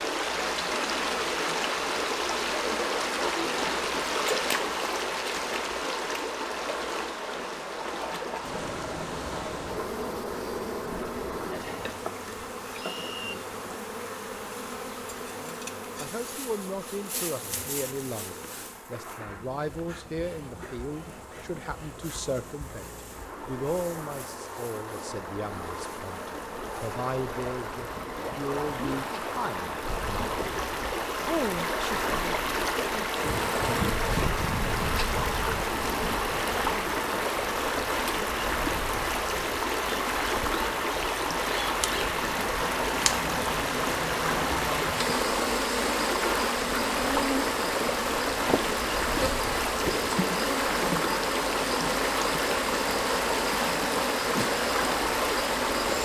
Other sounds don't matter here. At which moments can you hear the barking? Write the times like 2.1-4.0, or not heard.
not heard.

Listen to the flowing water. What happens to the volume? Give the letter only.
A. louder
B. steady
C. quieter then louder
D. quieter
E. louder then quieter
C.